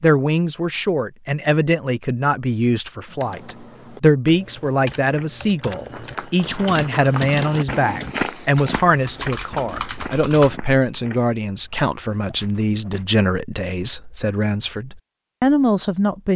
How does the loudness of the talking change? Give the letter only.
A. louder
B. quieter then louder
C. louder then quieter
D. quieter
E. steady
E.